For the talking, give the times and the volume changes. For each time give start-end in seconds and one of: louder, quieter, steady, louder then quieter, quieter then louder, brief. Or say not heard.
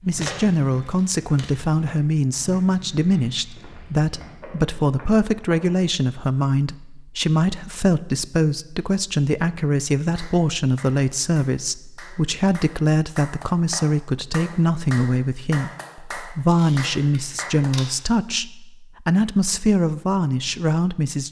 0.0-21.2 steady.